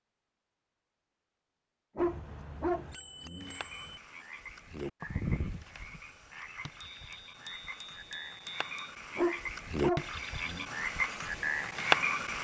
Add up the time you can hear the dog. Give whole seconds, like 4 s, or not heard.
3 s.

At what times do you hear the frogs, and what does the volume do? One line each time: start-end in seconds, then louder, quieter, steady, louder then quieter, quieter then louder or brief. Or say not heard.
3.4-12.3 quieter then louder.